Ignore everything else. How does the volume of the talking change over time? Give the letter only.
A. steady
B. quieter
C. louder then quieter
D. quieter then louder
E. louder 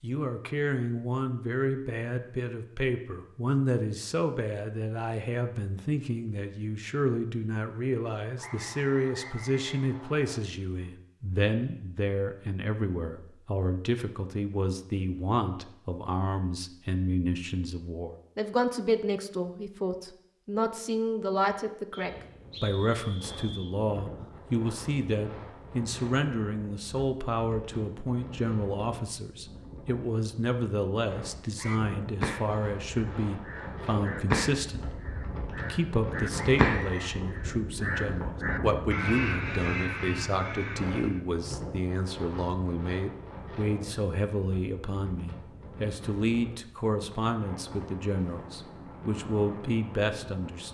A.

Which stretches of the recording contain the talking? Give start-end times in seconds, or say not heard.
0.0-50.6.